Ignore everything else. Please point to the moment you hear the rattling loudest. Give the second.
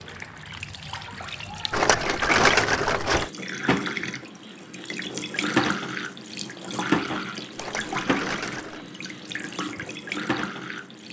2 s.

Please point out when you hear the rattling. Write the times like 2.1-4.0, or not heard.
1.7-3.3, 7.5-8.8.